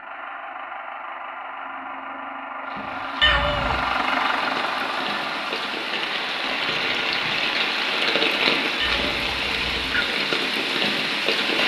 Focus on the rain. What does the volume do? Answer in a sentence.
The loudness of the rain goes up.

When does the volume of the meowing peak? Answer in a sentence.
The loudest moment of the meowing is at 3 seconds.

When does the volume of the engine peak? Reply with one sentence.
The loudest moment of the engine is at 4 seconds.